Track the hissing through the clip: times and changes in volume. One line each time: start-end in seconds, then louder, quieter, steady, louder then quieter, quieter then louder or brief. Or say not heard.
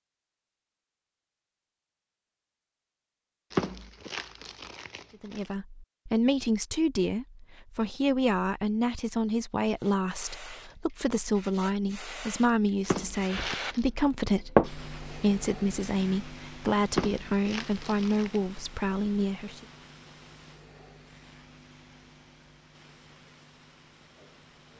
9.8-24.7 louder then quieter.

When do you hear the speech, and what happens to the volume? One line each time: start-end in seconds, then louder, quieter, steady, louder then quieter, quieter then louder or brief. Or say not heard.
5.2-19.6 steady.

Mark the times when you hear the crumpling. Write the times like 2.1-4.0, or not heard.
3.5-5.4, 12.8-13.8, 16.9-18.4.